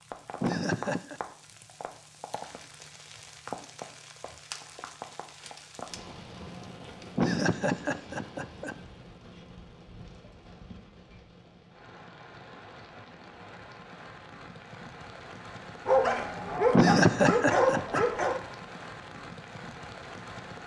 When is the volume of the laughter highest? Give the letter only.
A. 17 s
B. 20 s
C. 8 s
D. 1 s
A.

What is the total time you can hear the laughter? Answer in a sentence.
The laughter can be heard for 4 seconds in total.